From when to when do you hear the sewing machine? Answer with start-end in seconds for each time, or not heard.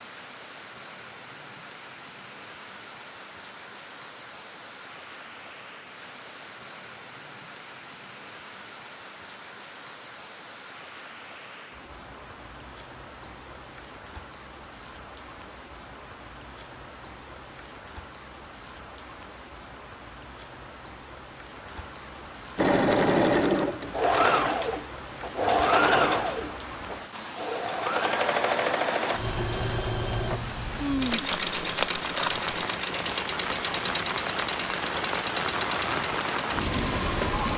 22.6-37.5.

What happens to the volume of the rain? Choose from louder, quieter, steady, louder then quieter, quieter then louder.
louder.